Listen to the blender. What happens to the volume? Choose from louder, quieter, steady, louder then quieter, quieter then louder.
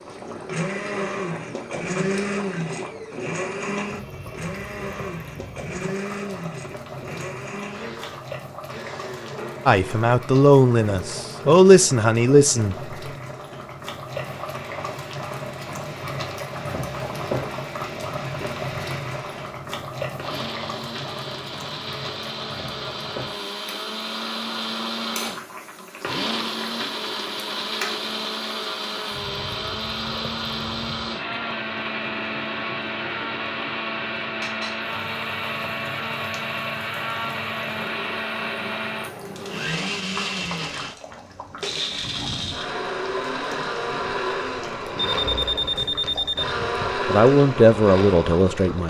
quieter then louder.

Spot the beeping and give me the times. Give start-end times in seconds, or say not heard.
45.0-46.5.